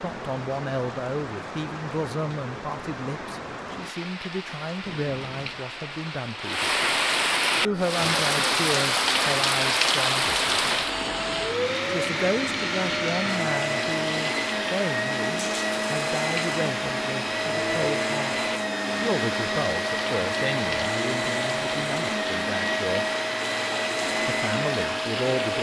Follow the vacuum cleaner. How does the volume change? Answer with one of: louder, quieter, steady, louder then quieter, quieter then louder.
louder.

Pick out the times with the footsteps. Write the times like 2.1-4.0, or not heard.
not heard.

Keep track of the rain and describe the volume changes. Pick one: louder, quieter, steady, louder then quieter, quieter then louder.
louder then quieter.